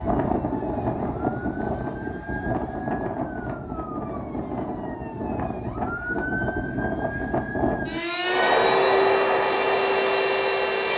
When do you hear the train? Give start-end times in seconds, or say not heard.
8.2-10.9.